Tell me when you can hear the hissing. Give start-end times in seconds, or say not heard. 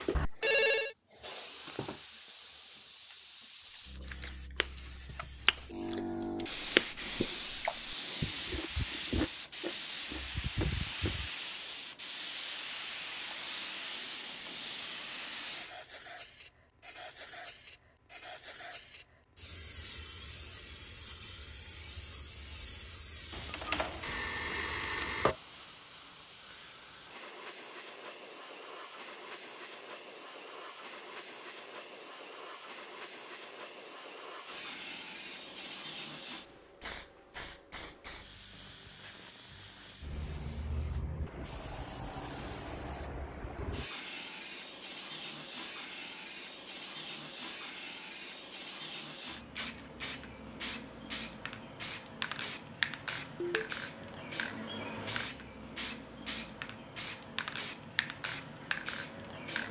0.0-59.6.